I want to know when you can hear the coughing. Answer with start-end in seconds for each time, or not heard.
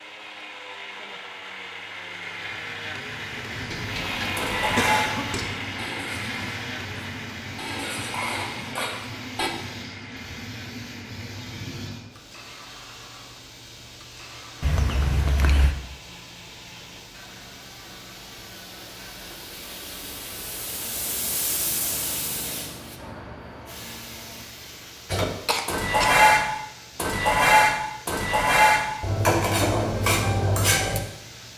4.5-5.2, 14.6-15.8, 25.4-26.1.